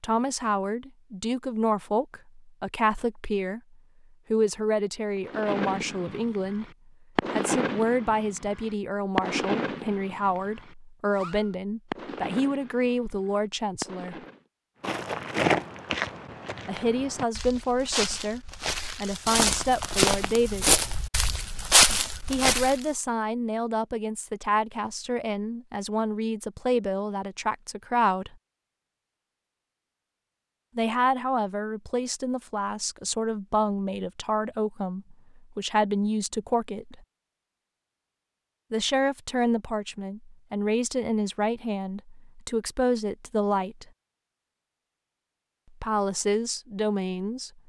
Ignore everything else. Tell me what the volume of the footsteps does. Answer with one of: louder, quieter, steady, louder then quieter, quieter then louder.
quieter then louder.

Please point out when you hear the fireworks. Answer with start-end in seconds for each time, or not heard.
5.2-14.4.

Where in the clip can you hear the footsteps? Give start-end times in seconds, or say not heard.
14.8-22.8.